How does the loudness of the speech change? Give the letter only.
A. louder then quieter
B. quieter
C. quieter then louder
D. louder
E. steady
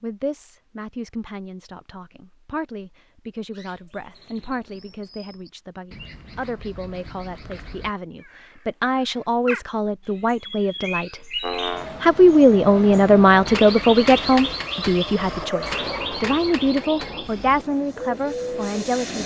A.